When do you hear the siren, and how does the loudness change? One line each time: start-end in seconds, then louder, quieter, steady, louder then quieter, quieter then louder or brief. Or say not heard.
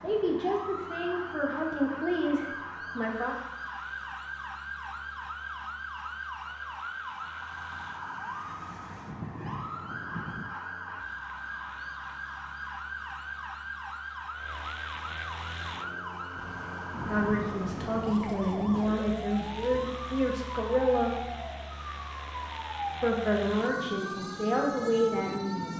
0.0-25.7 steady.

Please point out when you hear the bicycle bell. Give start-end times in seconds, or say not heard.
not heard.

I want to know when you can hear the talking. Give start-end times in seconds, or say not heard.
0.0-3.4, 17.1-21.2, 23.0-25.7.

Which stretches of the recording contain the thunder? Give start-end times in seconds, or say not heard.
9.1-10.6, 16.4-18.9.